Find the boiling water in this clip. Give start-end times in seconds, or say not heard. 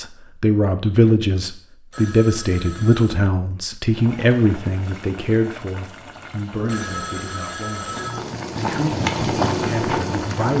3.9-10.5.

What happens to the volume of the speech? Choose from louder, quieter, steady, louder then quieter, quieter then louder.
quieter.